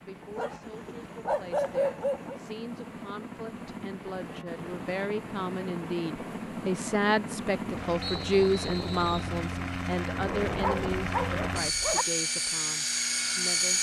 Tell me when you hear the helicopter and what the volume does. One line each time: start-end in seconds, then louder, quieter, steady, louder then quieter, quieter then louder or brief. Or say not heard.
0.0-13.7 louder.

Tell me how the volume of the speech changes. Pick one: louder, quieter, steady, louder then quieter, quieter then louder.
louder then quieter.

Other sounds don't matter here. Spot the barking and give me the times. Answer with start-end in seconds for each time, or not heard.
0.3-2.4, 10.5-12.1.